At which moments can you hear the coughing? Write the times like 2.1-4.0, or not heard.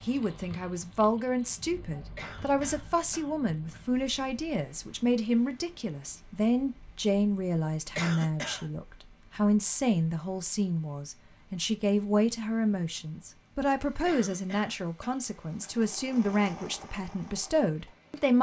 2.1-3.9, 8.0-8.7, 14.1-15.8.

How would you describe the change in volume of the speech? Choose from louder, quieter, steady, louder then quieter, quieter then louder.
steady.